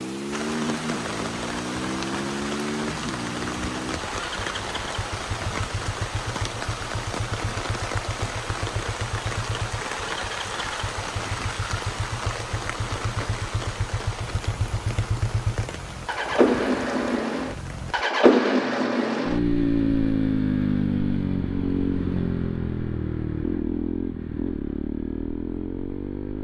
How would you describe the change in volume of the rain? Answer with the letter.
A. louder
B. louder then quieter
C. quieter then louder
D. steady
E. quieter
E.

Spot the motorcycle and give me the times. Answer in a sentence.
The motorcycle can be heard from 0.0 to 26.3 s.